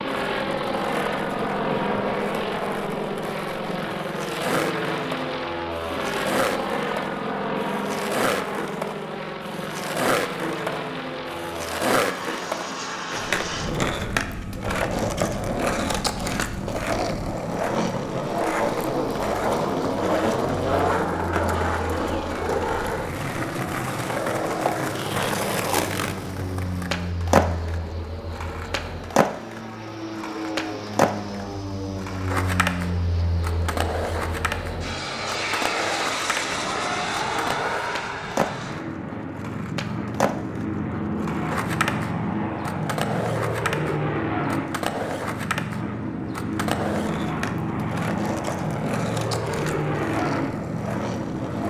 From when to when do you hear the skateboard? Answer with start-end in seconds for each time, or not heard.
0.0-51.6.